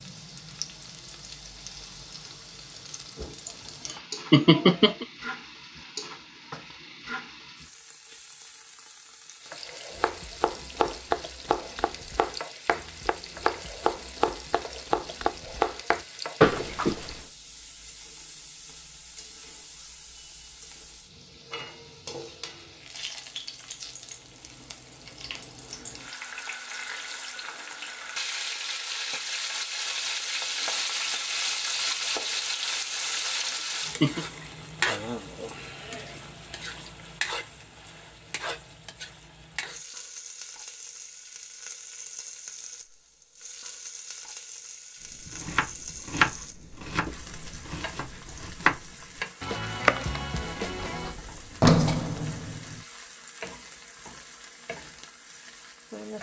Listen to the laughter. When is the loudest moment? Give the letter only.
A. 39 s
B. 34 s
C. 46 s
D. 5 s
D.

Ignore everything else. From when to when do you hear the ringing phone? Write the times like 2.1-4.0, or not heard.
not heard.